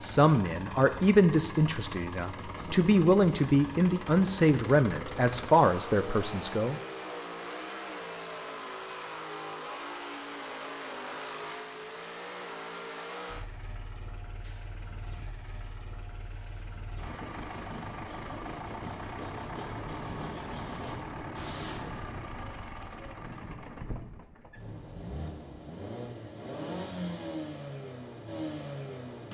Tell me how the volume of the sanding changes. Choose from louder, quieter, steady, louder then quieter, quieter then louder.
louder.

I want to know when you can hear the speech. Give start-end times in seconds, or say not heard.
0.0-6.8.